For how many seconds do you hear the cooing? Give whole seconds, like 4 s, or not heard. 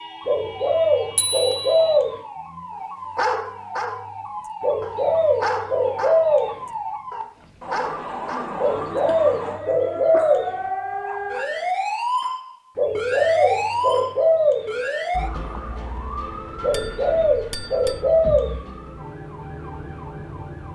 9 s.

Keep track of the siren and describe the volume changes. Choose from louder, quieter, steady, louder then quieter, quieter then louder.
louder then quieter.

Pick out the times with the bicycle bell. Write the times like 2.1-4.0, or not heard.
1.1-1.8, 16.7-18.0.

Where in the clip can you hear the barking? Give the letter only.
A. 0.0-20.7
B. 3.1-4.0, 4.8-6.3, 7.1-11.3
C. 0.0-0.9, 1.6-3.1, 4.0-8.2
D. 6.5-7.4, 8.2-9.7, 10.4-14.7
B.